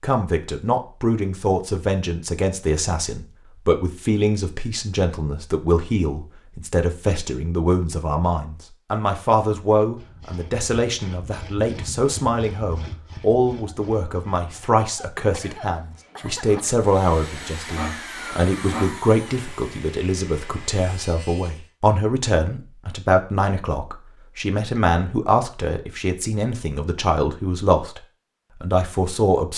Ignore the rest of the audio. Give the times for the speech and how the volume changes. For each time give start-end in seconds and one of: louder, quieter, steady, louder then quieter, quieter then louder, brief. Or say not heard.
0.0-28.0 steady
28.6-29.5 brief.